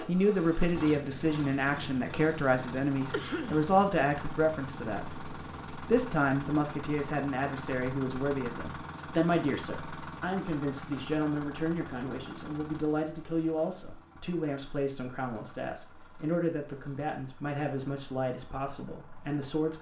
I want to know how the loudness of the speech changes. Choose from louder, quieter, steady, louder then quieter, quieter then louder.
quieter.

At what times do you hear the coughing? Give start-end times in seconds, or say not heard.
3.1-3.6.